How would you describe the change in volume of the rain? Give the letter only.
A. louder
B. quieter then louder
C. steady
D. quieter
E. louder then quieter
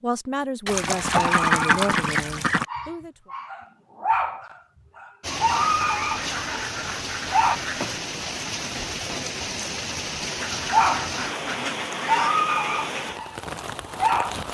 C.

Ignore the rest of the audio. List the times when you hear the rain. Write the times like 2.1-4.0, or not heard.
5.2-14.4.